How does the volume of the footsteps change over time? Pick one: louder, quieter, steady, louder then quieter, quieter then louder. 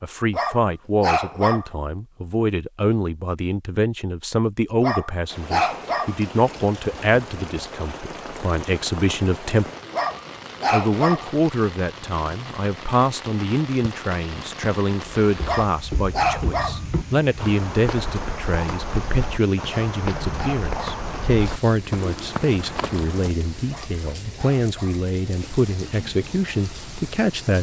steady.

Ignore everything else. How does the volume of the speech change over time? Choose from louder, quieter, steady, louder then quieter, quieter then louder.
steady.